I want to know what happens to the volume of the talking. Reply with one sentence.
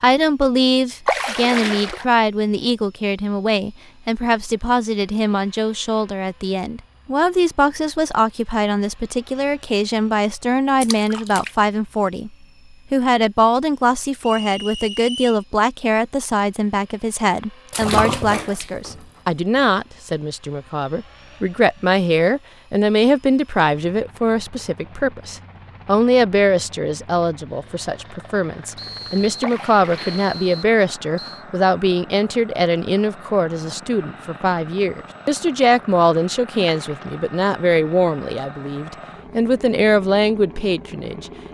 The volume of the talking stays about the same.